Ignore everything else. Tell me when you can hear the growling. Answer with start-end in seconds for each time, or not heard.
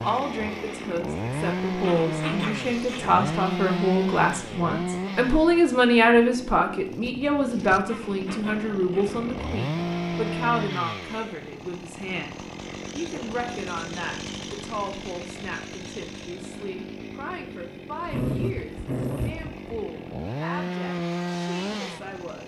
1.8-3.2, 7.8-9.3, 18.1-19.6.